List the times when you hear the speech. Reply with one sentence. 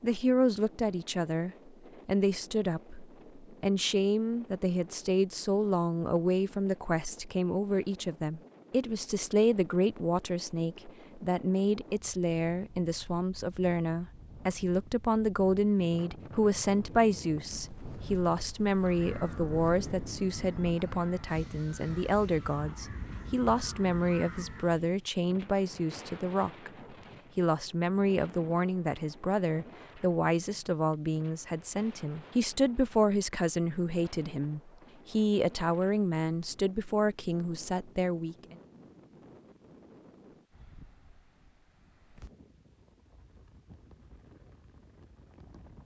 The speech can be heard from 0.0 to 26.7 s and from 27.4 to 38.5 s.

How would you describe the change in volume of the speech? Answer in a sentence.
The loudness of the speech stays about the same.